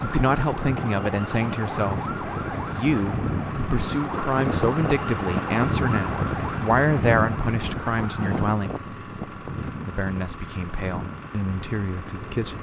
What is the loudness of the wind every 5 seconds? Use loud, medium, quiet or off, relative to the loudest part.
loud, loud, medium.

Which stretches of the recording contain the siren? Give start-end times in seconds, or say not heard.
0.0-8.5.